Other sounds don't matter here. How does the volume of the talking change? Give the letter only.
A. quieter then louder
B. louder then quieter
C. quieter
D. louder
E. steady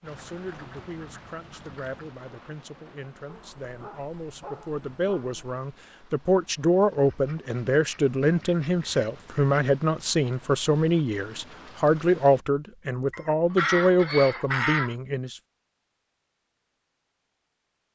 D.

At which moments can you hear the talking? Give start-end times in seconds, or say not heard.
0.0-15.4.